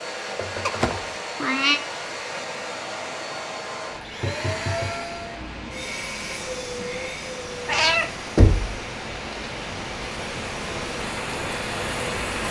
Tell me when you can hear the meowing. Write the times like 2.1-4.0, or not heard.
0.7-1.8, 7.7-8.1.